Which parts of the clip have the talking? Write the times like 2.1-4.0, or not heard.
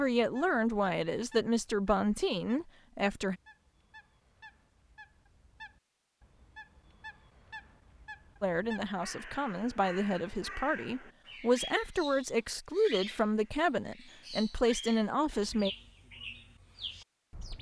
0.0-3.4, 8.4-15.7.